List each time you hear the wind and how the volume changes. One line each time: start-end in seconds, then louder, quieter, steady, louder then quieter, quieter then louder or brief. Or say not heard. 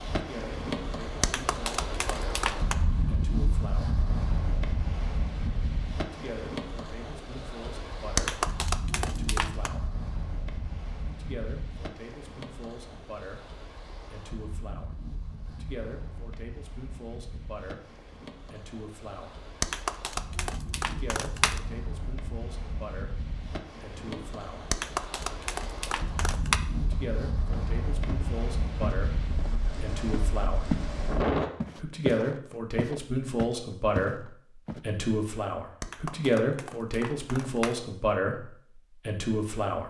0.0-31.5 quieter then louder.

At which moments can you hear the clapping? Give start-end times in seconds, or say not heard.
1.2-2.8, 8.2-9.7, 19.6-21.6, 24.7-26.6, 35.8-37.8.